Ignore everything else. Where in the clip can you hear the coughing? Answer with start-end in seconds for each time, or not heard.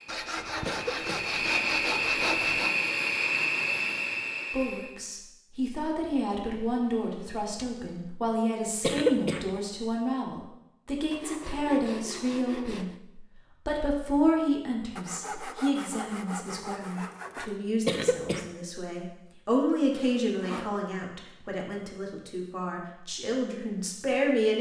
0.7-1.4, 8.8-9.5, 17.9-18.4.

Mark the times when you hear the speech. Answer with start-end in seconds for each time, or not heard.
4.5-24.5.